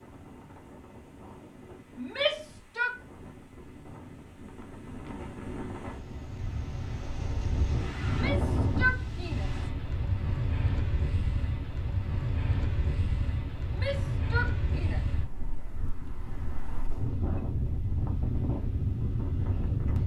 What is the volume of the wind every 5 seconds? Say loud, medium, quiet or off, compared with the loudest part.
quiet, loud, loud, loud.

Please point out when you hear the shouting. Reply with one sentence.
The shouting can be heard from 1.9 to 2.9 s, from 8.1 to 9.7 s and from 13.8 to 15.1 s.